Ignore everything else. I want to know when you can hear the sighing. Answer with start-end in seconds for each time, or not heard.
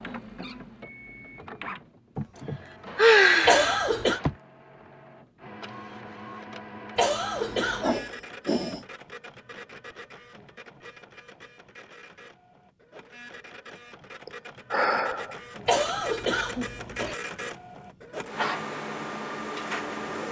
2.1-4.3, 7.7-8.8, 14.1-15.8.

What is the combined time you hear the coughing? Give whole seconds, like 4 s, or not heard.
3 s.